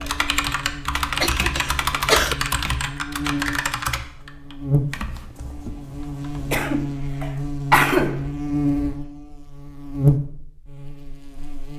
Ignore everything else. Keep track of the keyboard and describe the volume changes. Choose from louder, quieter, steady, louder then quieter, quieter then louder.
quieter.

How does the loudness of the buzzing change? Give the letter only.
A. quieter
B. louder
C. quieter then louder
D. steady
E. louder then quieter
B.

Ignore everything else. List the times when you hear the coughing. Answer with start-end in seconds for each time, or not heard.
1.2-2.4, 6.5-8.2.